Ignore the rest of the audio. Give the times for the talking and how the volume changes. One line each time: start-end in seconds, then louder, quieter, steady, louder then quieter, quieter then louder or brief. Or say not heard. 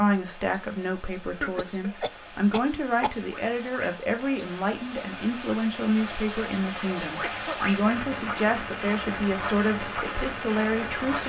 0.0-11.2 steady.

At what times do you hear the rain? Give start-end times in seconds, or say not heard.
0.0-11.2.